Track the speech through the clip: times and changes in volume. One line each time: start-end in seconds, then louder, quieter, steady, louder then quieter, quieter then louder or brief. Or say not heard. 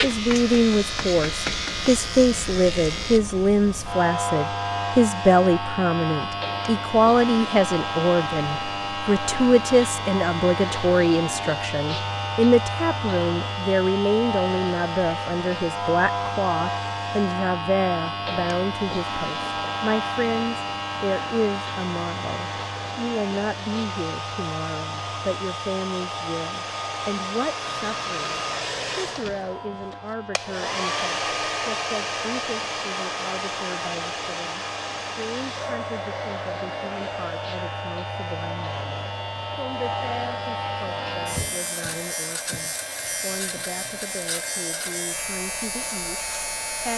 0.0-46.9 quieter.